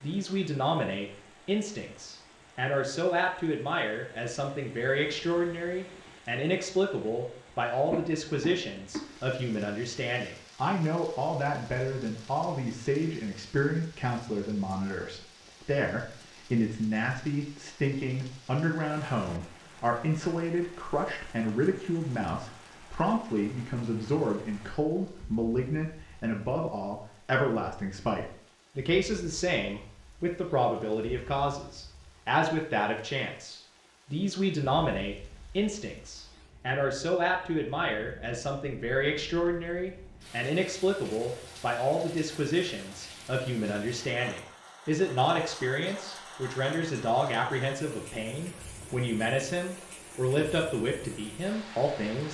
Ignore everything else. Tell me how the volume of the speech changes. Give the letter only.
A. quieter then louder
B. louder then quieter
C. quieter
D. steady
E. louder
D.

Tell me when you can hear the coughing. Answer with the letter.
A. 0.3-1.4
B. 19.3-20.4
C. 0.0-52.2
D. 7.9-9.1
D.